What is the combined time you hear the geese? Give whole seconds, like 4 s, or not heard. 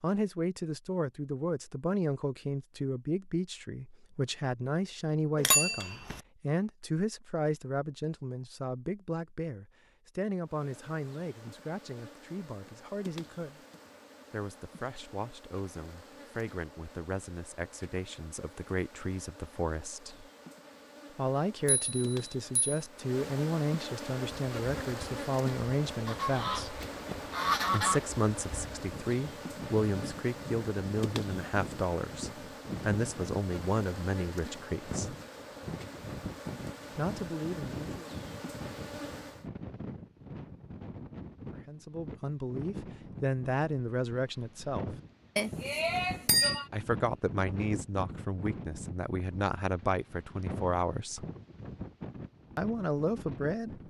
2 s.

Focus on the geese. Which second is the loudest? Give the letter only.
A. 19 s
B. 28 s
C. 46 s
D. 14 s
B.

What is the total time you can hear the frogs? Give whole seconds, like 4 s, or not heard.
not heard.